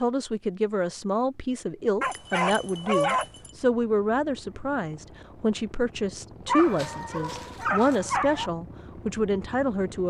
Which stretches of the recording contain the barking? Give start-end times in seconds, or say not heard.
2.0-3.5, 6.5-8.5.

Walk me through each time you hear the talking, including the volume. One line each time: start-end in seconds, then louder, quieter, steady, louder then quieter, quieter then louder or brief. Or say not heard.
0.0-10.0 steady.